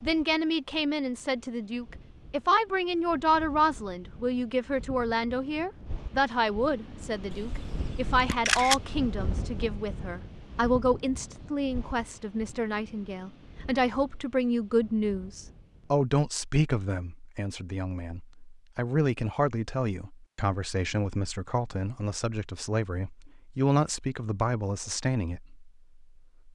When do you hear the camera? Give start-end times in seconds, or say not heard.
7.3-8.8.